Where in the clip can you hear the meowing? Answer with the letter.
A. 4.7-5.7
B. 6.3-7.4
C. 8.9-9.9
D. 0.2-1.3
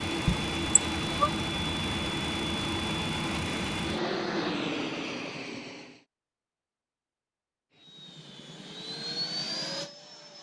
D.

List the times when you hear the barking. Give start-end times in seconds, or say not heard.
not heard.